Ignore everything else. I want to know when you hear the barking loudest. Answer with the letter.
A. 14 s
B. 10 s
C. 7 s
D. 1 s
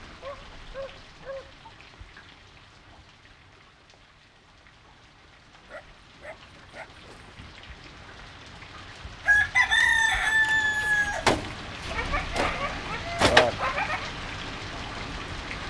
A.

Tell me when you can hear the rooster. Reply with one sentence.
The rooster can be heard from 9.2 to 13.7 s.